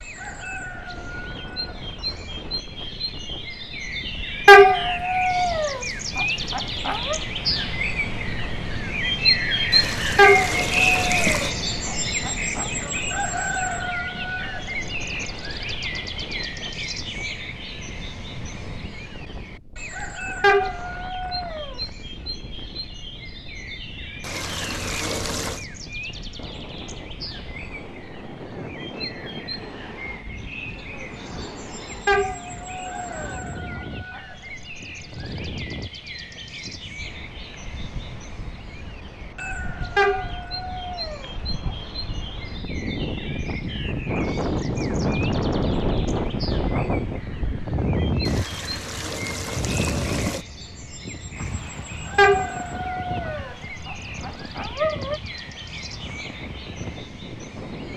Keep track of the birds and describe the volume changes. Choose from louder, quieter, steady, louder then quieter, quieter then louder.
quieter.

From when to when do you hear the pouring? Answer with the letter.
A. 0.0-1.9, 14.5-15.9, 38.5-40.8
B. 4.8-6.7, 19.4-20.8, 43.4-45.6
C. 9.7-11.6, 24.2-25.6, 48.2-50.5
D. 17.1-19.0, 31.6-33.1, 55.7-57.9
C.